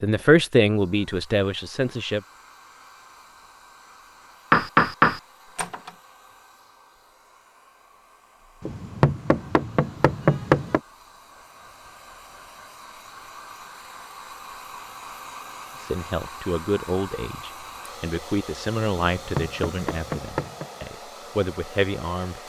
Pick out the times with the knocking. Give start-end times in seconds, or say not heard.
4.5-5.9, 8.6-10.8, 19.1-20.7.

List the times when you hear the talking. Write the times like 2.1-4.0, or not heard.
0.0-2.2, 15.8-22.4.